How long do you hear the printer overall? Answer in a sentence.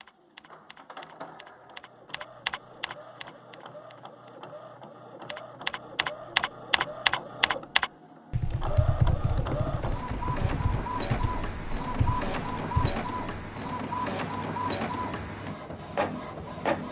You can hear the printer for 17 seconds altogether.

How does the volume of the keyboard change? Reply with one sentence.
The loudness of the keyboard goes up, then down.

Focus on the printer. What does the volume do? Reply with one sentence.
The loudness of the printer goes up.